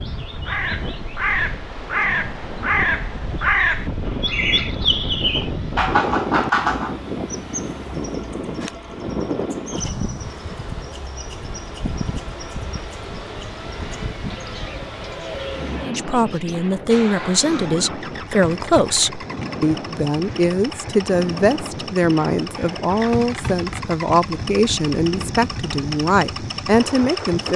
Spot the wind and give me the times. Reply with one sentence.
You can hear the wind from 0.0 to 27.5 s.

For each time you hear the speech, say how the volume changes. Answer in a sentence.
The speech can be heard from 15.8 to 27.5 s, at a steady volume.